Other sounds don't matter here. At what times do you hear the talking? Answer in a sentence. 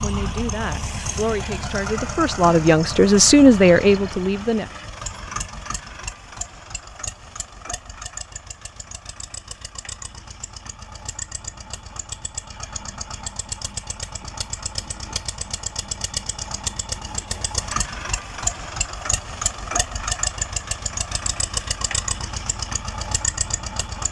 The talking can be heard from 0.0 to 4.7 s.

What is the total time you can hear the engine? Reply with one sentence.
The engine can be heard for 24 seconds in total.